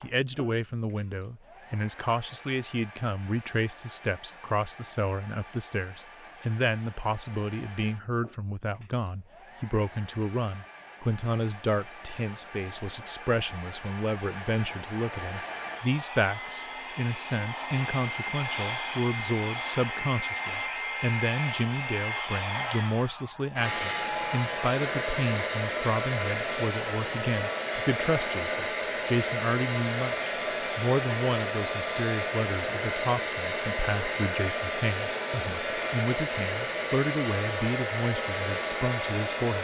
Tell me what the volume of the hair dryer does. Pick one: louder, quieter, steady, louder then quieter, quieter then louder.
louder.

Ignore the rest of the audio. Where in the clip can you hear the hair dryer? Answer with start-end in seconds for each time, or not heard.
0.0-39.6.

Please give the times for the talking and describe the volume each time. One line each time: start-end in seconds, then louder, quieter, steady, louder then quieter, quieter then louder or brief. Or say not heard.
0.0-39.6 steady.